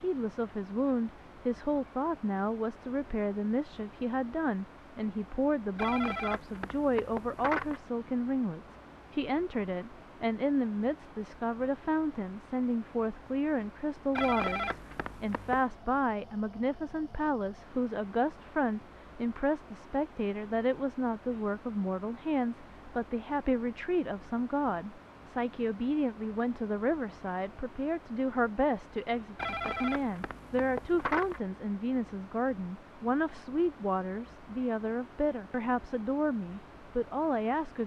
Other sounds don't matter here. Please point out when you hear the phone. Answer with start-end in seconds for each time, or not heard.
5.8-7.8, 14.2-15.7, 29.4-31.4.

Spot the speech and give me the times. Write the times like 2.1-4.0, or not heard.
0.0-37.8.